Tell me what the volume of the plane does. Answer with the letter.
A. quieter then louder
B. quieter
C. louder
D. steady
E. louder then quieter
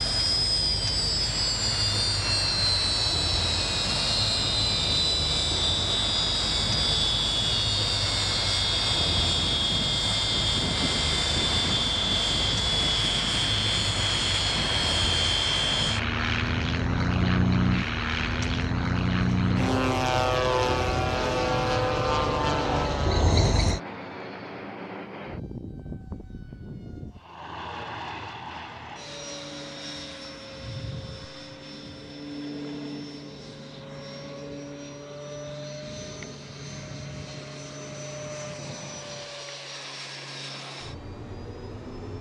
B.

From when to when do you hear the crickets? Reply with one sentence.
You can hear the crickets from 0.0 to 23.8 s.